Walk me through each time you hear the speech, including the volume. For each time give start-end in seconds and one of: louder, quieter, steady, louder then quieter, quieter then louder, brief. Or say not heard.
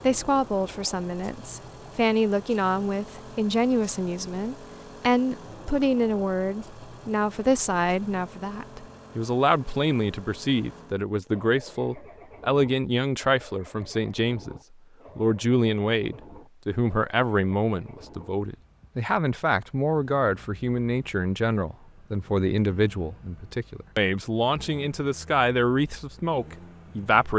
0.0-27.3 steady.